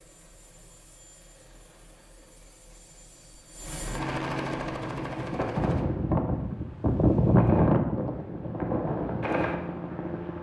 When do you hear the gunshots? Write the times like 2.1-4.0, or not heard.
not heard.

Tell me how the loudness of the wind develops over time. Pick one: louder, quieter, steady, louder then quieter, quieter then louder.
louder then quieter.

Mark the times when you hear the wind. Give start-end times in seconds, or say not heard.
4.7-10.3.